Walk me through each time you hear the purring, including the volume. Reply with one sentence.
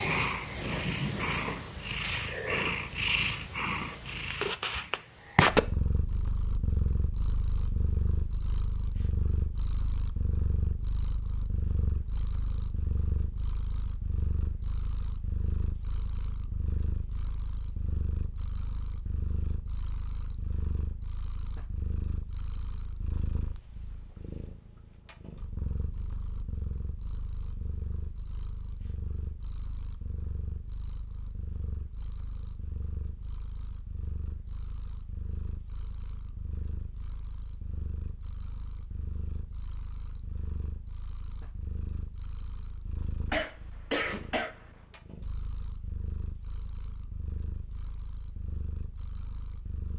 You can hear the purring from 0.0 to 49.9 s, getting quieter.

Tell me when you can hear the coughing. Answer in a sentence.
The coughing can be heard from 43.3 to 44.6 s.